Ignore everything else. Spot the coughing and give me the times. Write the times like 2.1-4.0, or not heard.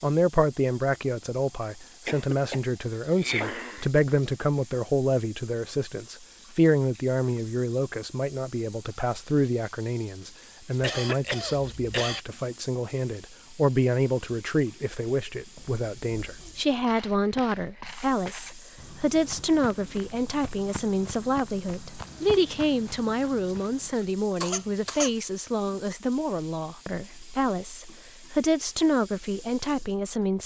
2.0-3.9, 10.8-12.2, 24.4-25.1.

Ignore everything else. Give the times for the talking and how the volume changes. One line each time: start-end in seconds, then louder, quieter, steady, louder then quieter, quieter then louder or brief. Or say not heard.
0.0-30.4 steady.